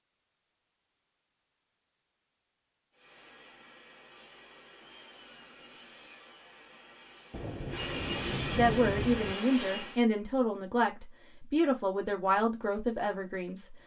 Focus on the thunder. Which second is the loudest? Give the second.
9 s.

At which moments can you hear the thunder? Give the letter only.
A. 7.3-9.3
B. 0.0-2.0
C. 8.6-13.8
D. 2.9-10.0
A.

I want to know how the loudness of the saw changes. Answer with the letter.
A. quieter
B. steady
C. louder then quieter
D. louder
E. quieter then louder
D.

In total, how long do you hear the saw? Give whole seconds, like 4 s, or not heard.
7 s.